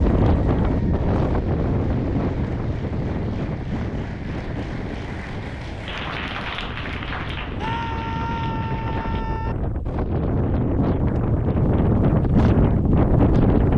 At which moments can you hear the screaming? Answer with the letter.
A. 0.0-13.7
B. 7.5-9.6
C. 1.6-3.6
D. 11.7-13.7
B.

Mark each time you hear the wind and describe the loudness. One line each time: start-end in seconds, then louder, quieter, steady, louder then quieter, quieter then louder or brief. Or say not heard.
0.0-13.7 quieter then louder.